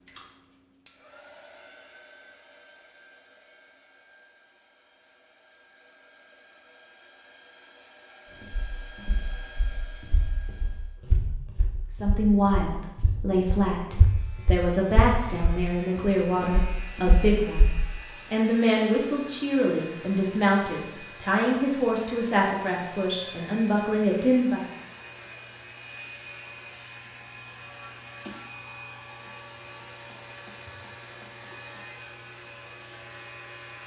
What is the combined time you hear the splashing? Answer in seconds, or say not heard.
not heard.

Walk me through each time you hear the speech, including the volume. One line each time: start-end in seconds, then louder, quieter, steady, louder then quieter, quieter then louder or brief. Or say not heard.
11.9-24.6 steady.